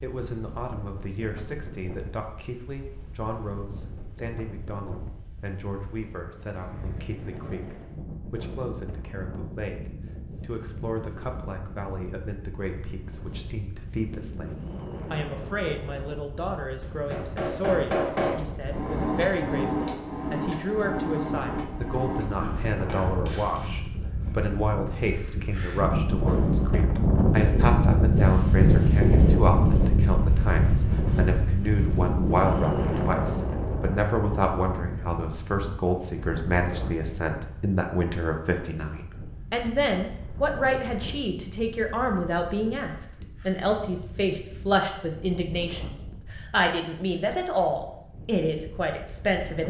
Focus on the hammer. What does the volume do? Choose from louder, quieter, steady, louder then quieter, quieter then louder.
quieter.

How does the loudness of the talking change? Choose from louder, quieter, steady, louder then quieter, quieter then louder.
louder.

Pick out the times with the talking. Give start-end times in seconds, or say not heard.
0.0-14.5, 15.1-49.6.